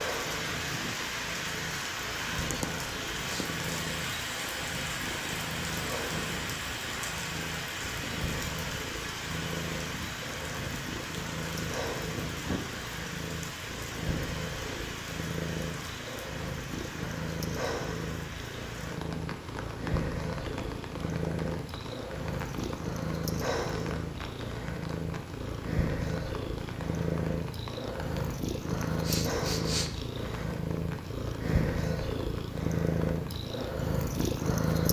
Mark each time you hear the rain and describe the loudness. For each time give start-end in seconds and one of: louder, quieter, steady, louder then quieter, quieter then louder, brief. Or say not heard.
0.0-34.5 quieter.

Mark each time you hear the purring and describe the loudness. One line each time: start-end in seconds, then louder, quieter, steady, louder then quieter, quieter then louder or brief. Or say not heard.
0.0-34.8 louder.